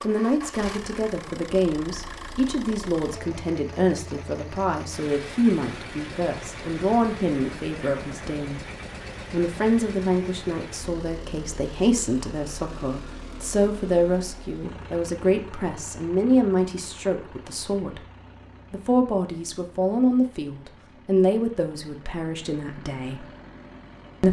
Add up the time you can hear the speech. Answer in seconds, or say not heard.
22 s.